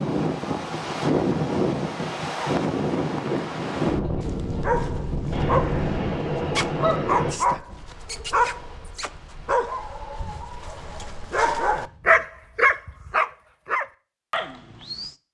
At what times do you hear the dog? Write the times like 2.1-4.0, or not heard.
4.2-15.1.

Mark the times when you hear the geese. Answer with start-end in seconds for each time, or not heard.
5.3-7.3.